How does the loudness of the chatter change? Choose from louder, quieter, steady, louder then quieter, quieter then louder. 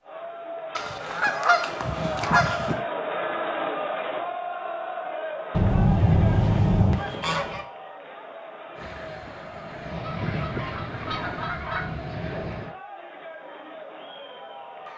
quieter.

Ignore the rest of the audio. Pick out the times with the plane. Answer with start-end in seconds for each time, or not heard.
8.8-12.8.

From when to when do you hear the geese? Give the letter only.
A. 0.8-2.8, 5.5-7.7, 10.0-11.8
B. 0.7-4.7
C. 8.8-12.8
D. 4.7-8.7
A.